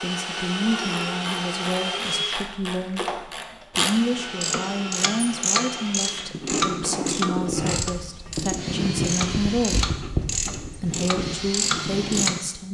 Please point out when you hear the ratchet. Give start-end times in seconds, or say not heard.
0.8-12.4.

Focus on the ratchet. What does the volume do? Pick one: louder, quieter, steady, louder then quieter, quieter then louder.
louder.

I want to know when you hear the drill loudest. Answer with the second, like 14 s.
2 s.